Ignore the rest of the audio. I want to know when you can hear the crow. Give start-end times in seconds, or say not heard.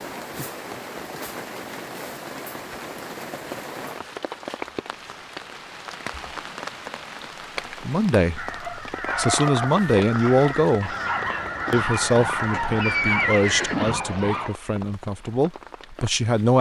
8.3-13.8.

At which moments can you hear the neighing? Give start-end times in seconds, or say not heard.
12.5-14.2.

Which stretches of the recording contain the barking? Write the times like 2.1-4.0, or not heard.
8.5-14.6.